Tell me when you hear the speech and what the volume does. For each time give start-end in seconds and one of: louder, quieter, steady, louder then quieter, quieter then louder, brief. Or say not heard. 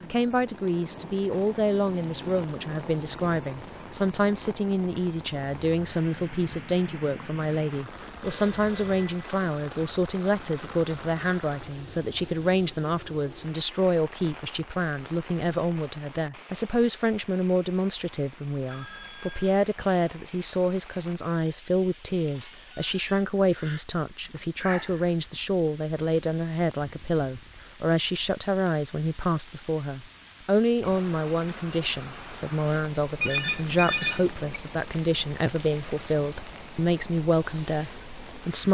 0.0-38.7 steady.